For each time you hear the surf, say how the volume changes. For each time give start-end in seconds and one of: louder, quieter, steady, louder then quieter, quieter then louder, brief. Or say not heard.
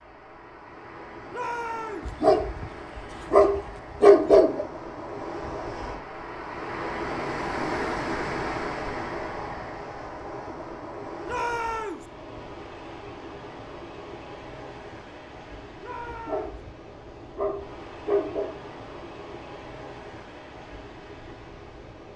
0.0-22.1 louder then quieter.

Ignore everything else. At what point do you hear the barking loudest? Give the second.
4 s.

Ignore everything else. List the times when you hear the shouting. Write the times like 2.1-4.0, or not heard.
1.3-2.1, 11.2-12.1, 15.8-16.6.